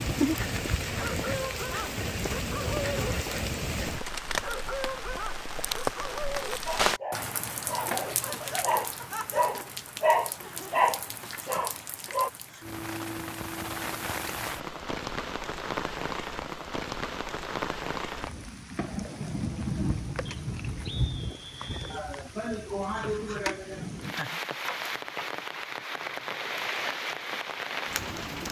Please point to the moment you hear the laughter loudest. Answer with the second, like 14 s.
23 s.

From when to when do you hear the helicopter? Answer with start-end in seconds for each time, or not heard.
not heard.